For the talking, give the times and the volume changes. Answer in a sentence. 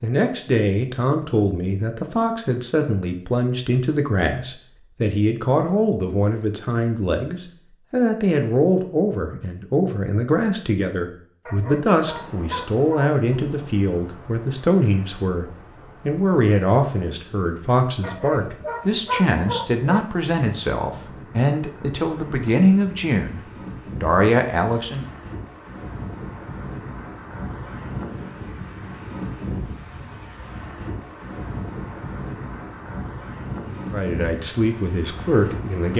The talking can be heard from 0.0 to 25.1 s, at a steady volume; and briefly from 33.9 to 35.9 s.